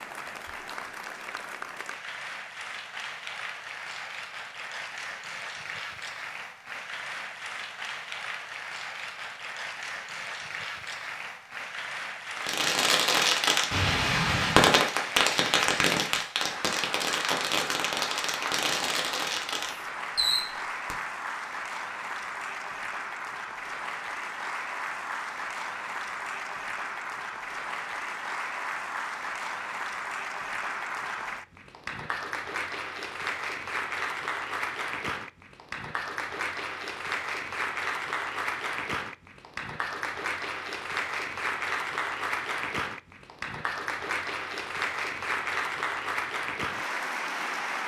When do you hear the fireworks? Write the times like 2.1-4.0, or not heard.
12.3-20.9.